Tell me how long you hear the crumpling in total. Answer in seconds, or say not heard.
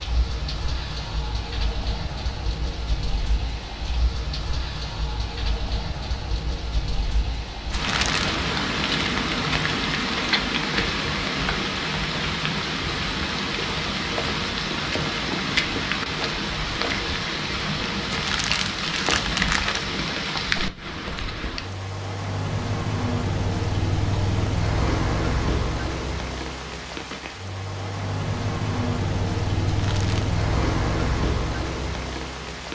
3 s.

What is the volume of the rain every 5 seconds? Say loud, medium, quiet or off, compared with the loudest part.
medium, loud, loud, loud, loud, loud, loud.